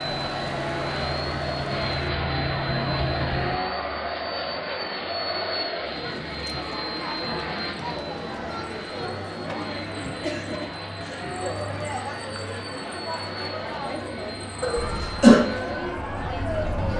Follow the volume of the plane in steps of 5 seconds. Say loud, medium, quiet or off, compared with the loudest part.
loud, loud, medium, medium.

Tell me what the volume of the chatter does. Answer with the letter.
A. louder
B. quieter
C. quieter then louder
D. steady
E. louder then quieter
D.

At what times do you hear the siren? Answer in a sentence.
You can hear the siren from 0.0 to 3.6 s and from 14.8 to 16.9 s.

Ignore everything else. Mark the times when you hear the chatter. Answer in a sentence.
You can hear the chatter from 0.0 to 16.9 s.